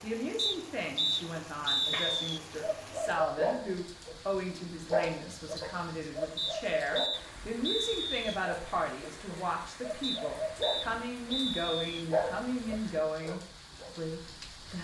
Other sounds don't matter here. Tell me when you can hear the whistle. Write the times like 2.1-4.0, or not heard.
0.3-2.4, 6.3-8.3, 10.0-12.1.